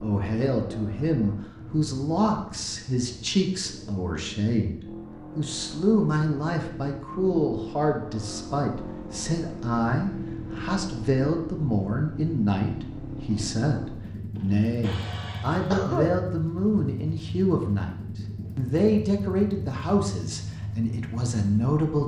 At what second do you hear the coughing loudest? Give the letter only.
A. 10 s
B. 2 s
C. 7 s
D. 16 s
D.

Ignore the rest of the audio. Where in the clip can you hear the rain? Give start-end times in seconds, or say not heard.
not heard.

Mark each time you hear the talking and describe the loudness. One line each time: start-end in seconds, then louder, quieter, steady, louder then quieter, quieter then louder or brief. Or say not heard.
0.0-22.0 steady.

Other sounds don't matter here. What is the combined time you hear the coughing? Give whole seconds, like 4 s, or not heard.
2 s.